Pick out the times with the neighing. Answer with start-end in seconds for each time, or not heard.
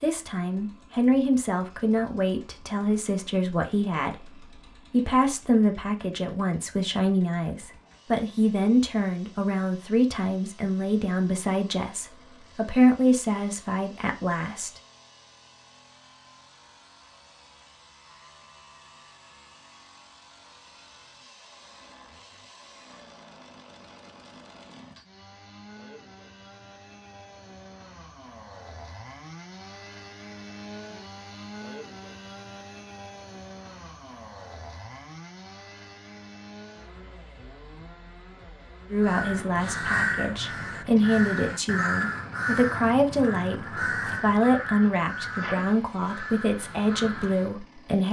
not heard.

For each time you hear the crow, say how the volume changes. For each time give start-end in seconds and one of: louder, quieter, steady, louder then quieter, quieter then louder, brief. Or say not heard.
39.0-47.5 quieter.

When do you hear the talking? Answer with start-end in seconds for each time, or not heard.
0.0-14.8, 38.9-48.0.